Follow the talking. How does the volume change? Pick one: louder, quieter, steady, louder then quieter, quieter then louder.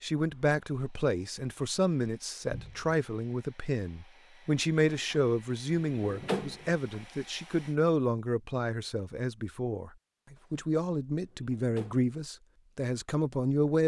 steady.